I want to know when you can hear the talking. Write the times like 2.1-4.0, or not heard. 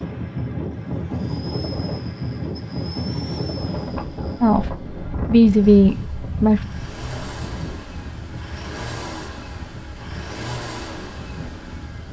4.4-6.6.